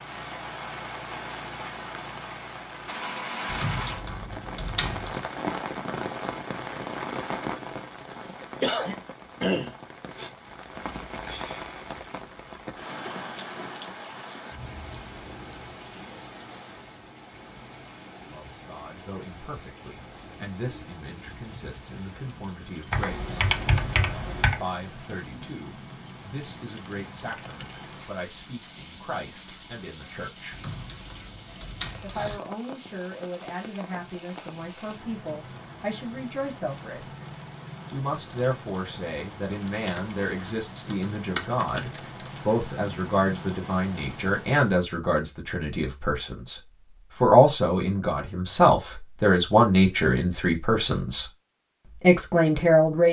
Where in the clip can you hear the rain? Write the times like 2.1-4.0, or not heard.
0.0-44.8.